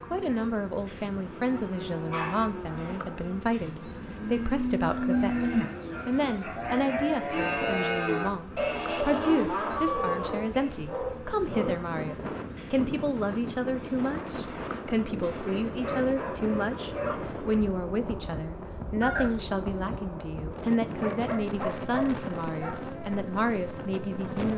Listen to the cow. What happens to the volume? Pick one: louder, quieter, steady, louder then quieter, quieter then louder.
louder.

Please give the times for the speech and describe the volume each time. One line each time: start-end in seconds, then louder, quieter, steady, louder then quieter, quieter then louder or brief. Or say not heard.
0.0-24.5 steady.